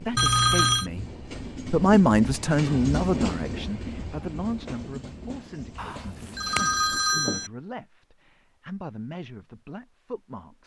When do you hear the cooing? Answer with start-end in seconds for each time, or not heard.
not heard.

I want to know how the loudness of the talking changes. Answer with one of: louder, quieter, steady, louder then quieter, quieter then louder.
quieter.